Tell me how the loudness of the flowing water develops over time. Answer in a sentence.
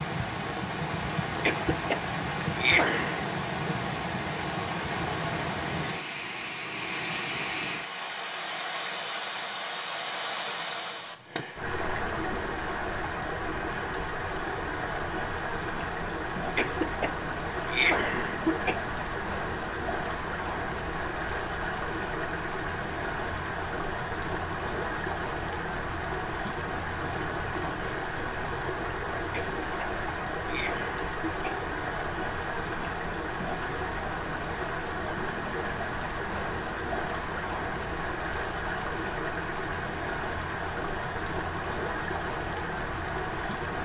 The loudness of the flowing water stays about the same.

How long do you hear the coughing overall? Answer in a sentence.
You can hear the coughing for 6 seconds altogether.